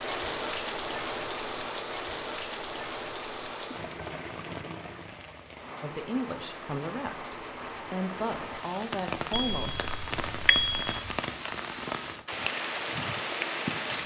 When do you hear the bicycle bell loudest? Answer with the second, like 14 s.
11 s.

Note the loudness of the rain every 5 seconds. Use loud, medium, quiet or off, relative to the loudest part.
loud, medium, loud.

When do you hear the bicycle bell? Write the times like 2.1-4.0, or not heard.
9.3-11.2.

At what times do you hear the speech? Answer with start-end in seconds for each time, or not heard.
5.8-9.9.